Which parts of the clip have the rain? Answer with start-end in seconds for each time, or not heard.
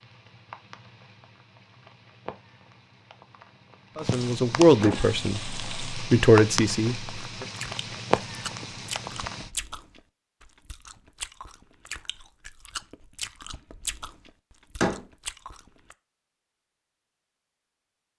0.0-9.5.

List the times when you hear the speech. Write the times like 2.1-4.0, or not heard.
4.0-7.5.